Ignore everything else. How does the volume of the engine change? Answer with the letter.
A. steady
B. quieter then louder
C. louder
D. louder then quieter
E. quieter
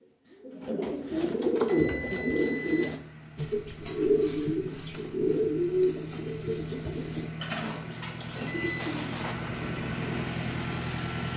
C.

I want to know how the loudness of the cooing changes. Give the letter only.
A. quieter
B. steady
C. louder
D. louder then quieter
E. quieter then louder
A.